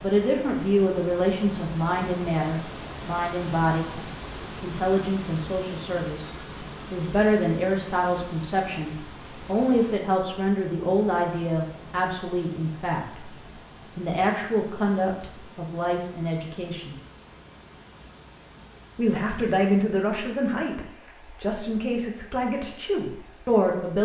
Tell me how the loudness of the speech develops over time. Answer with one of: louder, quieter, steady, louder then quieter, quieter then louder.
steady.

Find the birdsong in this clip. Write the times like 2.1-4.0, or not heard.
not heard.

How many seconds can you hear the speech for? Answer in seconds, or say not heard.
21 s.